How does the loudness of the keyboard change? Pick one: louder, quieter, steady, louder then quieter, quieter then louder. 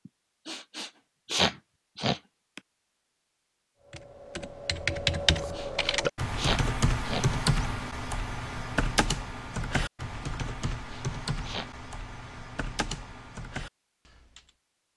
quieter.